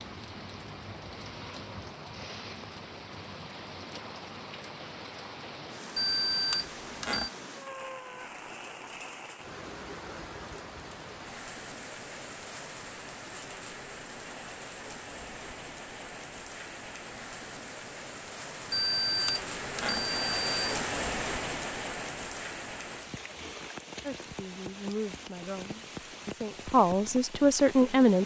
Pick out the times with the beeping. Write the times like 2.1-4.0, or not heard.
6.0-7.3, 18.7-20.7.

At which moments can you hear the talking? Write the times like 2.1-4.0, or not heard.
24.0-28.2.